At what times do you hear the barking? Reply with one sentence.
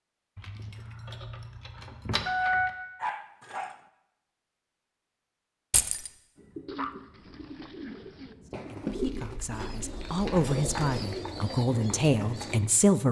The barking can be heard from 2.4 to 3.8 s and from 6.7 to 8.3 s.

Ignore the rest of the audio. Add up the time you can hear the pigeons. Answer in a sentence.
You can hear the pigeons for 6 seconds altogether.